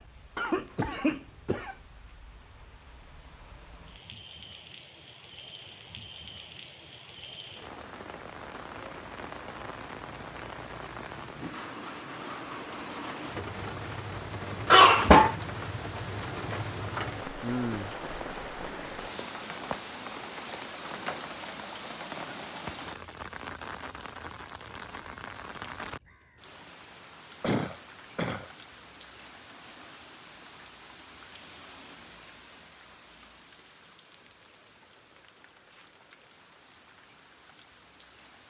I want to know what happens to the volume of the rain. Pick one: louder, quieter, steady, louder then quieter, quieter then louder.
louder then quieter.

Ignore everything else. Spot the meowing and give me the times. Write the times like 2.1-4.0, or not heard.
not heard.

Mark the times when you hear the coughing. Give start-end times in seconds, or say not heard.
0.3-1.8, 14.7-15.3, 27.4-28.4.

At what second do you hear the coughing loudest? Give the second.
15 s.